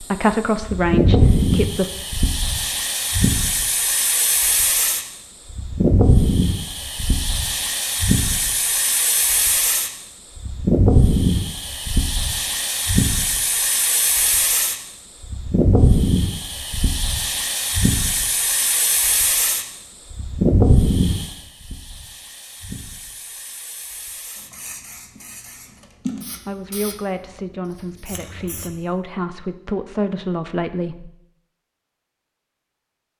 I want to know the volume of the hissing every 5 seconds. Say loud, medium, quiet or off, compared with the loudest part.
loud, loud, loud, loud, loud, quiet, off.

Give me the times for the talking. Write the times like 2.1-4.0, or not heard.
0.0-1.9, 26.4-31.1.